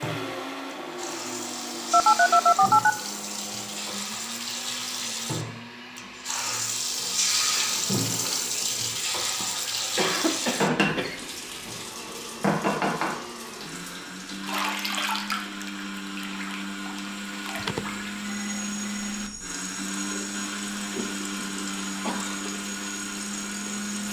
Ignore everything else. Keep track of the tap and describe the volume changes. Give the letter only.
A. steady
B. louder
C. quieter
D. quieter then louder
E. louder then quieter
E.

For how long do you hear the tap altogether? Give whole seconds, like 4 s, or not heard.
24 s.